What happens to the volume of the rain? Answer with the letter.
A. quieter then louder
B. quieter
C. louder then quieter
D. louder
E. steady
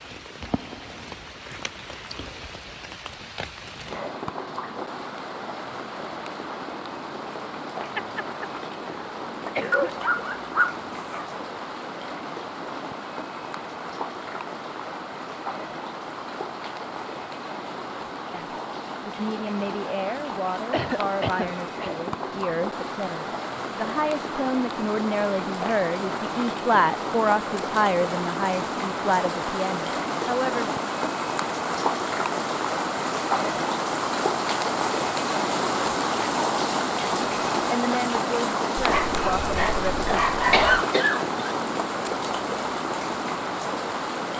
D.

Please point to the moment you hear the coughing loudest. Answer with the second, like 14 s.
41 s.